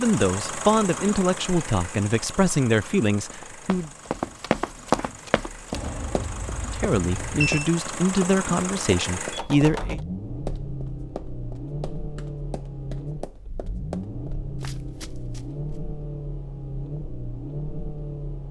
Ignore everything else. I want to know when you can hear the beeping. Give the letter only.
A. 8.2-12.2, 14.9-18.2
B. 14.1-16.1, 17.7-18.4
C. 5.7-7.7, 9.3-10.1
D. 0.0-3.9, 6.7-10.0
C.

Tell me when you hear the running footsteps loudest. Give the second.
5 s.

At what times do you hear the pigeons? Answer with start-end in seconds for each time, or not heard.
not heard.